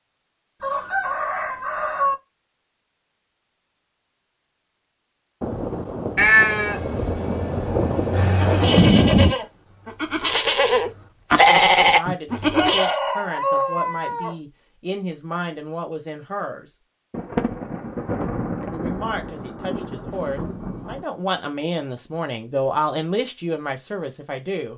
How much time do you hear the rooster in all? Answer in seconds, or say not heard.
3 s.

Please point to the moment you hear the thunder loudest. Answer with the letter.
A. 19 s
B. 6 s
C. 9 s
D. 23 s
C.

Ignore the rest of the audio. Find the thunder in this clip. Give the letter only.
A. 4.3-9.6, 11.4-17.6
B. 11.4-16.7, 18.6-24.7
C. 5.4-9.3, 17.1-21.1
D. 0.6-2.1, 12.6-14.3
C.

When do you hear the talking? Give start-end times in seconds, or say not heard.
11.4-16.7, 18.6-24.7.